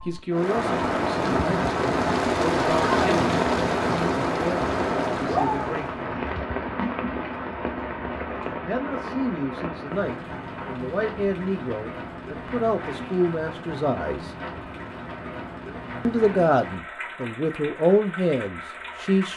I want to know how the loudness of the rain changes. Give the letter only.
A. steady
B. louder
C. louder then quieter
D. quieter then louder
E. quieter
E.